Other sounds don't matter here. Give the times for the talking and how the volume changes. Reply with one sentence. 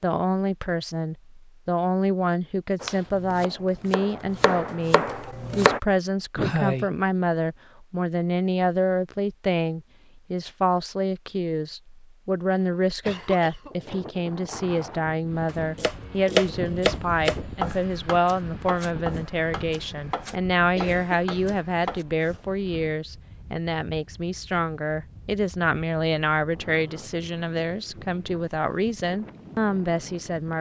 You can hear the talking from 0.0 to 30.5 s, at a steady volume.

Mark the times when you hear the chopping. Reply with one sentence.
The chopping can be heard from 2.8 to 5.8 s and from 15.4 to 22.1 s.